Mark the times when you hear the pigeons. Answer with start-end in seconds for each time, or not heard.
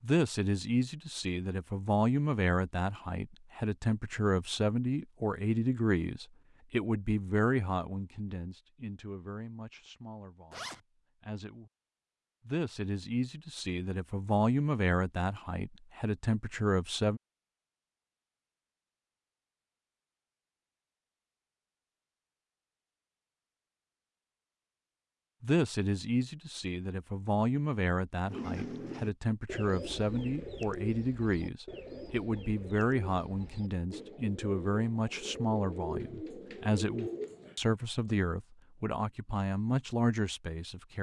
28.2-37.5.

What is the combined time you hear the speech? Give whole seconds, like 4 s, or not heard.
32 s.